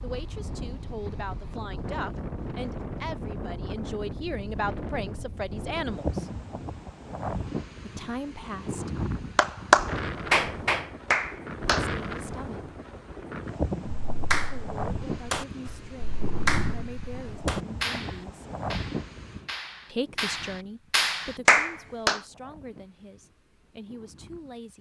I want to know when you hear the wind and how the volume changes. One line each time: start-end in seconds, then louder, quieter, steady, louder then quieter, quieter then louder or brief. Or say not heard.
0.0-24.7 quieter.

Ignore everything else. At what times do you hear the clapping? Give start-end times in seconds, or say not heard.
9.3-11.8, 14.1-22.2.